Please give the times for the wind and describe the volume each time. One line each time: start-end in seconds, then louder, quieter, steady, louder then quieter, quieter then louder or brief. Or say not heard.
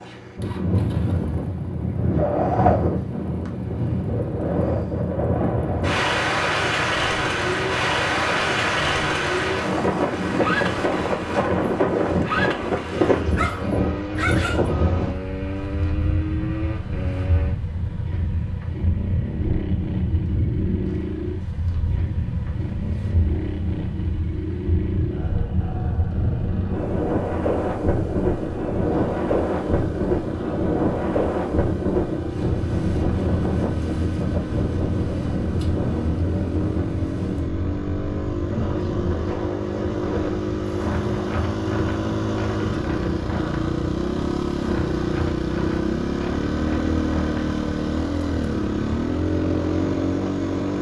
0.0-50.7 quieter.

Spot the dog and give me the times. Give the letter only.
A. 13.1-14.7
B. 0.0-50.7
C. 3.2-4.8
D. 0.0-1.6
A.